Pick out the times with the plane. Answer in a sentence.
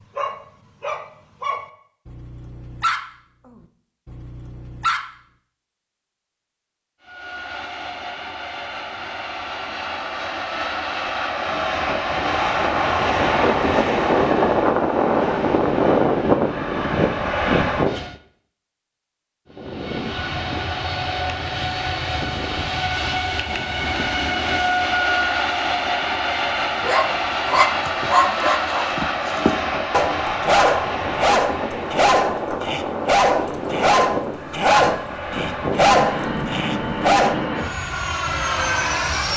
You can hear the plane from 7.0 to 18.1 s and from 19.5 to 39.3 s.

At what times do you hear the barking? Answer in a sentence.
The barking can be heard from 0.0 to 5.1 s and from 26.8 to 37.4 s.